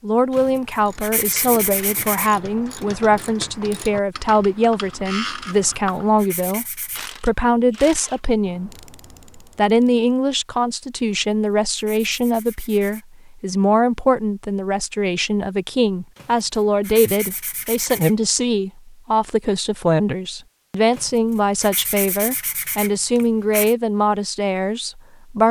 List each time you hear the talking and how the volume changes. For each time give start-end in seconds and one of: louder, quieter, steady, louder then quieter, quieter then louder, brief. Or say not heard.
0.0-8.7 steady
9.6-25.4 steady.